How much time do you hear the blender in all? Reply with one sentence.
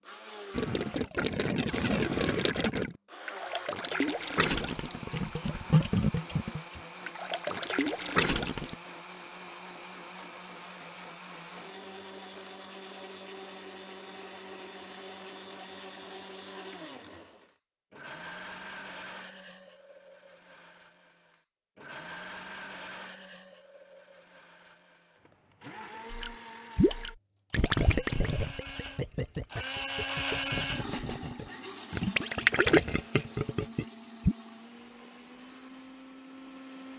The blender can be heard for 37 seconds in total.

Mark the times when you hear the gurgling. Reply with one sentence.
You can hear the gurgling from 0.6 to 8.8 s and from 26.1 to 34.4 s.